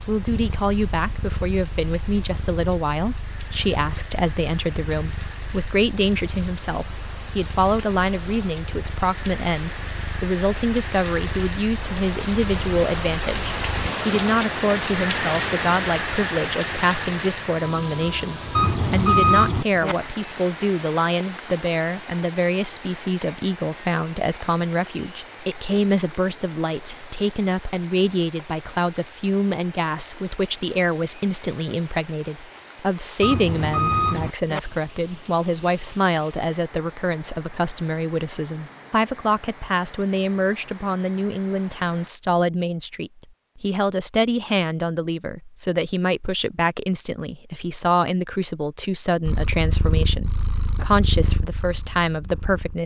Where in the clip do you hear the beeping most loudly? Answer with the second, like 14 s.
19 s.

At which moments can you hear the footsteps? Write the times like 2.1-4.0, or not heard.
not heard.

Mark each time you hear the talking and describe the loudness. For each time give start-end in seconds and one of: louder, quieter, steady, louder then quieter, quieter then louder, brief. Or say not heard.
0.1-52.8 steady.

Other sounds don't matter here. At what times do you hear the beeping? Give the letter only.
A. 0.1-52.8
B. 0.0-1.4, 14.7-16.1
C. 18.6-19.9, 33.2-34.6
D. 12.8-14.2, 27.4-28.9
C.